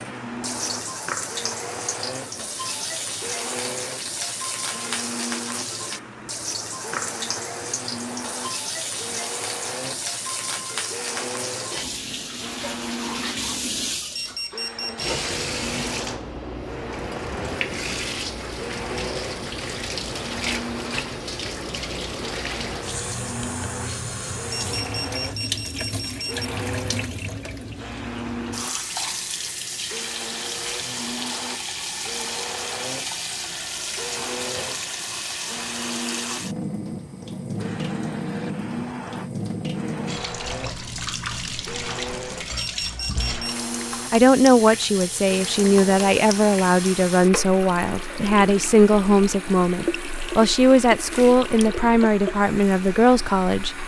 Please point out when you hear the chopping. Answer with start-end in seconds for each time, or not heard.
not heard.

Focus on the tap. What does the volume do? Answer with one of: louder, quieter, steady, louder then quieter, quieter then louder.
steady.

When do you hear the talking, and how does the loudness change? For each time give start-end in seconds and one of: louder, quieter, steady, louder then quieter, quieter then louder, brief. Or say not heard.
44.1-53.8 steady.